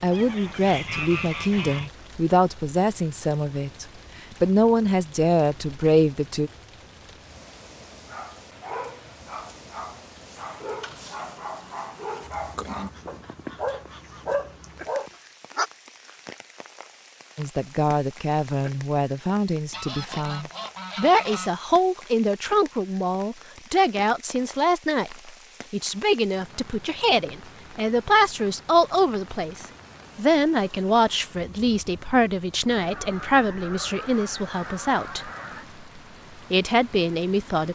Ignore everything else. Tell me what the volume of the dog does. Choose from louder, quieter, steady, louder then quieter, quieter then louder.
louder.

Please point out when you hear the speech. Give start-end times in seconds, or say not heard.
0.0-6.5, 17.4-35.3, 36.5-37.6.